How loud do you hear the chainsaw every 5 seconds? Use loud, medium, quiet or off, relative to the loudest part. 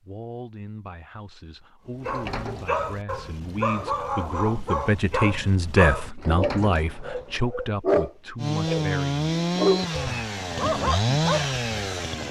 off, loud, loud.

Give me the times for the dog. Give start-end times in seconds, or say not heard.
2.0-11.6.